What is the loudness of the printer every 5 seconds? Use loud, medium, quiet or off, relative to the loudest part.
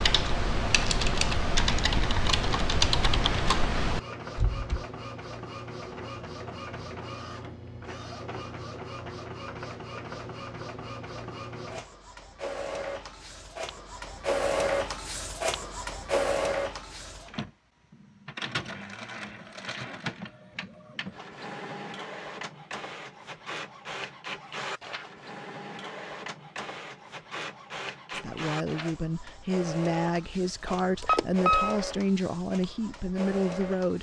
medium, medium, loud, loud, medium, medium, medium.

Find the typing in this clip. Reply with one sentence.
The typing can be heard from 0.0 to 4.8 s.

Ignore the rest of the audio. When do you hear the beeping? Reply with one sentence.
The beeping can be heard from 30.6 to 31.8 s.